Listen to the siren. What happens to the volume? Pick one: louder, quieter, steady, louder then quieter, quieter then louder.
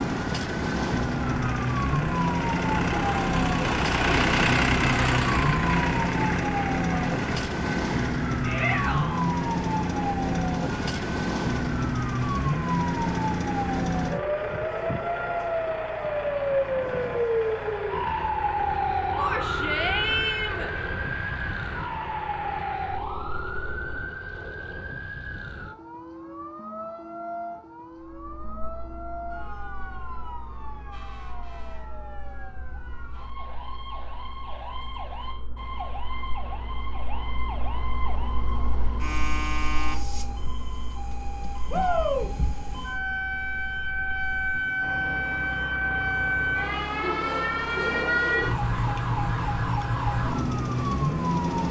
quieter then louder.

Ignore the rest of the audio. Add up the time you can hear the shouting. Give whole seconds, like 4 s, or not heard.
3 s.